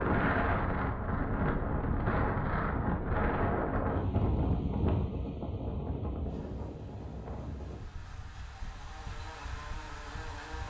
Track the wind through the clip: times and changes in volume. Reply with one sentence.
You can hear the wind from 0.0 to 10.6 s, getting quieter.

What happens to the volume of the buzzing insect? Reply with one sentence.
The loudness of the buzzing insect goes up.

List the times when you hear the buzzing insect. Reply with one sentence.
You can hear the buzzing insect from 6.2 to 10.6 s.